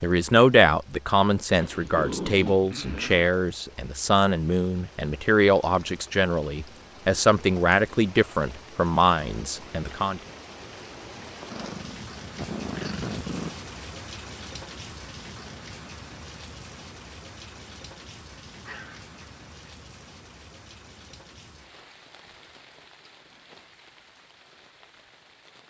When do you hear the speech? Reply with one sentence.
You can hear the speech from 0.0 to 10.2 s.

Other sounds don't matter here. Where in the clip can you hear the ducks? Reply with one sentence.
The ducks can't be heard in this clip.